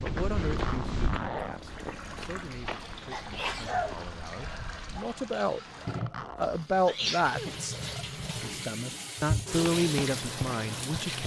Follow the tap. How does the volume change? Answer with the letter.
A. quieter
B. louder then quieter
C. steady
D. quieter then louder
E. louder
E.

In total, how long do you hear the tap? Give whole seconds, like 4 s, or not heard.
10 s.